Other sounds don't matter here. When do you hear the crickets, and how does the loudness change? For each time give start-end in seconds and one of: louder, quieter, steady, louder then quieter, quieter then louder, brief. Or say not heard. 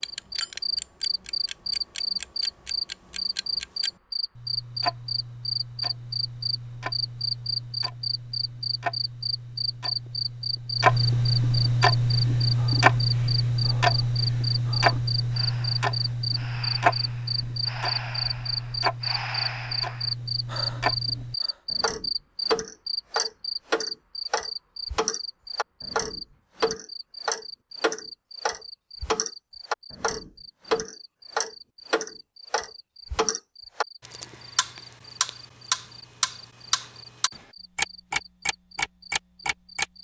0.0-39.9 quieter.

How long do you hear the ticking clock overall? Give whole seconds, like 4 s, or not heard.
40 s.